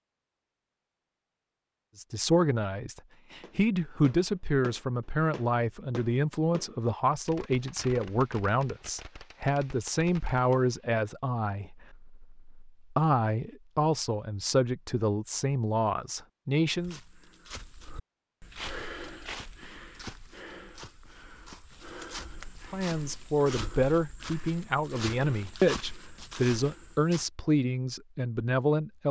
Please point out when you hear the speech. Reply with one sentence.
You can hear the speech from 1.9 to 17.0 s and from 22.7 to 29.0 s.